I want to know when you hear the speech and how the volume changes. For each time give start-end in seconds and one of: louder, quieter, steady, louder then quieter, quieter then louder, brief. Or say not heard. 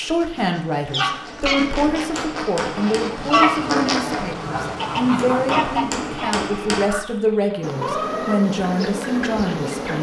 0.0-9.9 steady.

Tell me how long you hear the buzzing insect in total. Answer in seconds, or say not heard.
2 s.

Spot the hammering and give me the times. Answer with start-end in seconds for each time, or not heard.
1.4-3.1, 5.2-6.8.